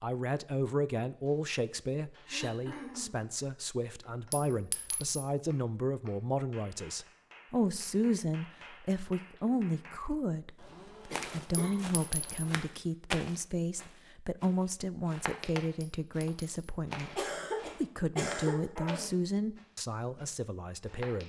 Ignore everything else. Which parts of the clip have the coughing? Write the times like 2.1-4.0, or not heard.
2.2-3.2, 10.6-12.6, 17.1-19.1.